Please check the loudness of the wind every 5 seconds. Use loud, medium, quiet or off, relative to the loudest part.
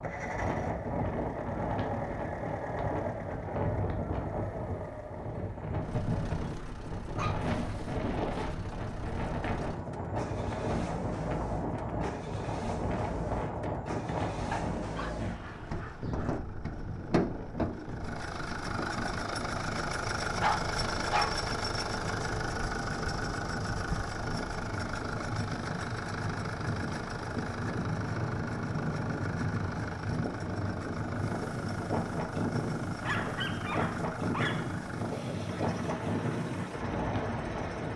loud, loud, loud, medium, medium, loud, loud, loud.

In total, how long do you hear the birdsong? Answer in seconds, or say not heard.
not heard.